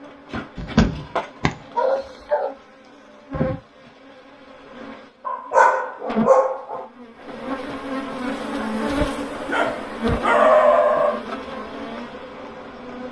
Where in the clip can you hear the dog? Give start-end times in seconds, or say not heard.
0.6-2.5, 5.2-6.8, 9.4-11.2.